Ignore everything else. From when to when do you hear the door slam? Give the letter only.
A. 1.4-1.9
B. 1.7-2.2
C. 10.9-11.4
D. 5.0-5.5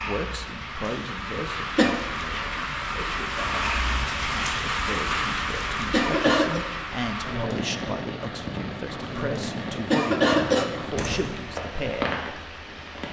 C.